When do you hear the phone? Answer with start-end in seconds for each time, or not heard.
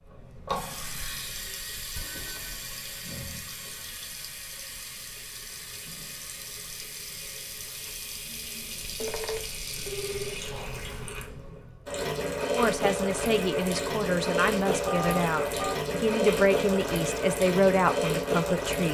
1.9-2.6, 9.0-10.4, 14.8-15.8.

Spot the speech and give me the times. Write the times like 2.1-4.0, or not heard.
12.6-18.8.